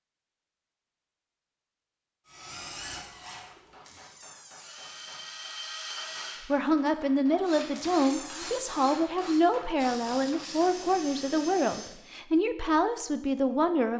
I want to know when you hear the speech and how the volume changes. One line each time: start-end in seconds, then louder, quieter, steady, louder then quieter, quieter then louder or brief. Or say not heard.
6.5-13.9 steady.